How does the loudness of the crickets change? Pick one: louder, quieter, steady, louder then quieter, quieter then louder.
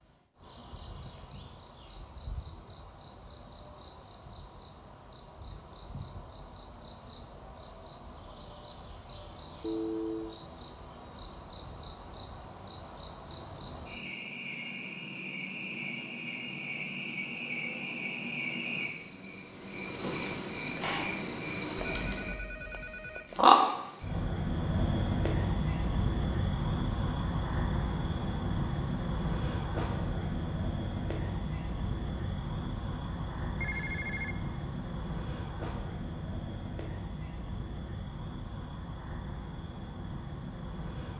louder then quieter.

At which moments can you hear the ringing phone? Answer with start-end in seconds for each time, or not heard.
9.6-10.4, 21.8-23.4, 33.5-34.4.